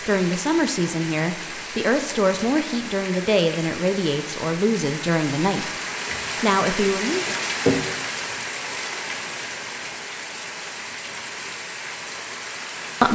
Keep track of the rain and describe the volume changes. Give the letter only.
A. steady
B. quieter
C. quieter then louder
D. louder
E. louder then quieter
E.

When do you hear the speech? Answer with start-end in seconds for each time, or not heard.
0.0-5.8, 6.4-7.4.